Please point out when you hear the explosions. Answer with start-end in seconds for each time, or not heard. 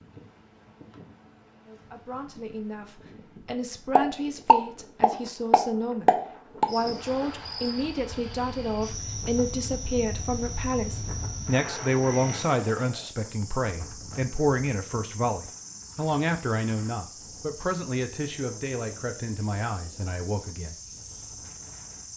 4.0-6.7.